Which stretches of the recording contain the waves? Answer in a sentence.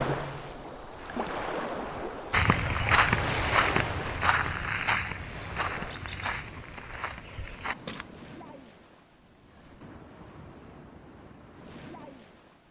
The waves can be heard from 0.0 to 12.6 s.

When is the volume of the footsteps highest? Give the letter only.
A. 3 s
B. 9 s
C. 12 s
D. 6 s
A.